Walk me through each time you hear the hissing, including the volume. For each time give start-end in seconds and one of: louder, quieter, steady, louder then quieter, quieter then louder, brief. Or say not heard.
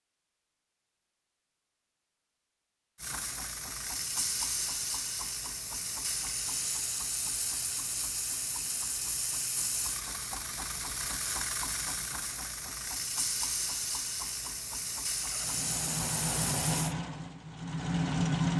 3.0-16.9 steady.